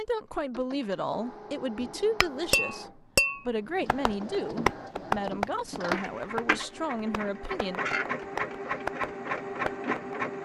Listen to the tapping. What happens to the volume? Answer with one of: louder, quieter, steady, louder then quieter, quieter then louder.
quieter then louder.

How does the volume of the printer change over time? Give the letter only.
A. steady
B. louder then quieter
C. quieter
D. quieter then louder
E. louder
E.